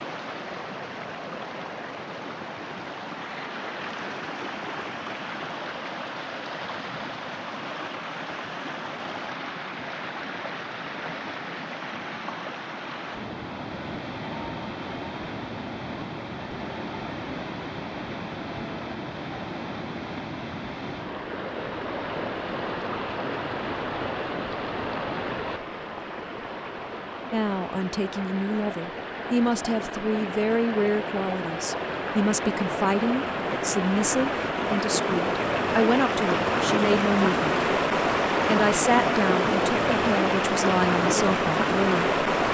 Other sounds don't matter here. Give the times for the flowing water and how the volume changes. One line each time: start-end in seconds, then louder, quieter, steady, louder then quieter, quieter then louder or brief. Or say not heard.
0.0-42.4 louder.